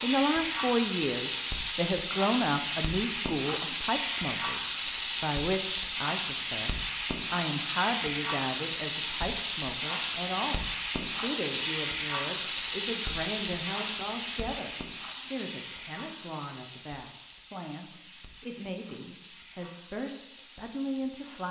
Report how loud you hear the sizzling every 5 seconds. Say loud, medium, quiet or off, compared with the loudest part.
loud, loud, loud, quiet, quiet.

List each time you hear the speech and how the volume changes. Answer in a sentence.
You can hear the speech from 0.0 to 21.4 s, getting quieter.